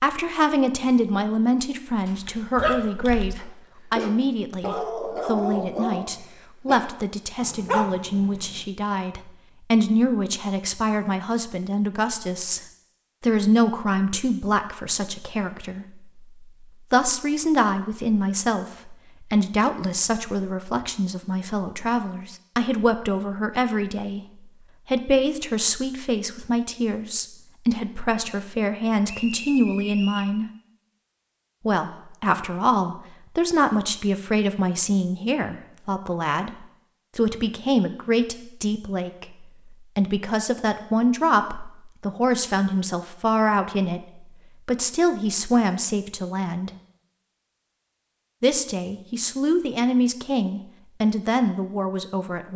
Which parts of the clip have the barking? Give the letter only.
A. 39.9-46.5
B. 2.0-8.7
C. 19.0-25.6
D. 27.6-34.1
B.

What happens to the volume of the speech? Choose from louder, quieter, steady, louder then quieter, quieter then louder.
steady.